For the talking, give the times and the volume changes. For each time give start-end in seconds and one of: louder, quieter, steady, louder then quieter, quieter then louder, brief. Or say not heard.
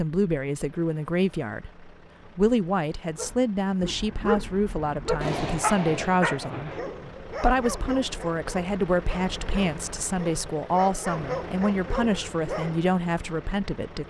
0.0-14.0 steady.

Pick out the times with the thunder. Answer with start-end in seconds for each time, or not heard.
5.2-6.8.